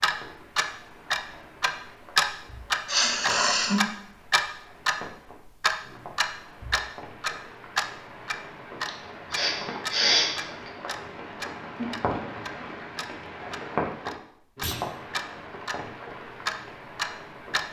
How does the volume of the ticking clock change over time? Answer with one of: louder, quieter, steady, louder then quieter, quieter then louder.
quieter then louder.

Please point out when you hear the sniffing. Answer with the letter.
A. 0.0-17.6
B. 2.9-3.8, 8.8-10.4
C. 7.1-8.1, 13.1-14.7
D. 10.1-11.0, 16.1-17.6
B.